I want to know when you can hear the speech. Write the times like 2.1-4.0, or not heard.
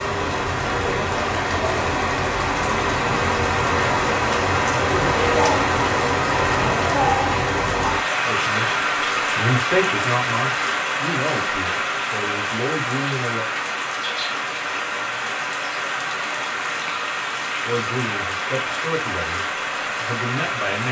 8.2-13.4, 17.6-20.8.